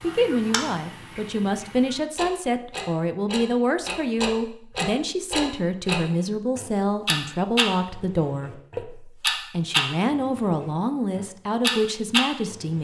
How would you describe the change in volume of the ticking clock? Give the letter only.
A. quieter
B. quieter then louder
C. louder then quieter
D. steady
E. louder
E.